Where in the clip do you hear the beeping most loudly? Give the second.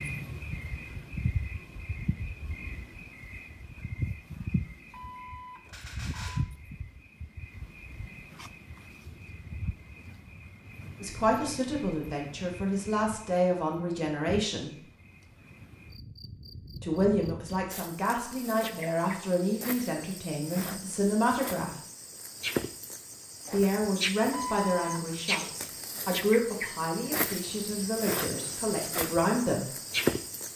25 s.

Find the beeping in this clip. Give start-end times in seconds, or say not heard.
4.9-6.5, 24.3-25.2.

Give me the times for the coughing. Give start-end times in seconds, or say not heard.
not heard.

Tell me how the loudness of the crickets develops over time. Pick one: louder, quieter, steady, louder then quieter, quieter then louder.
quieter then louder.